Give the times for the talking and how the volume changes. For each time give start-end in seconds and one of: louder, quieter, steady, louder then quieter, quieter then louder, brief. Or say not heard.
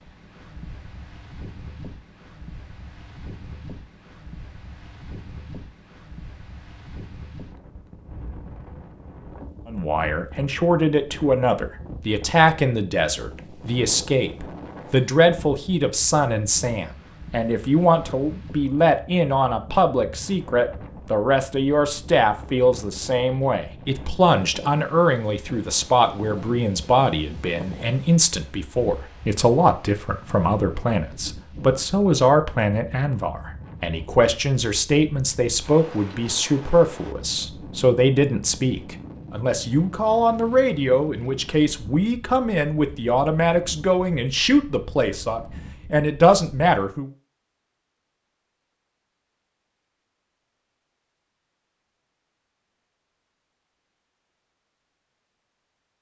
9.7-47.1 steady.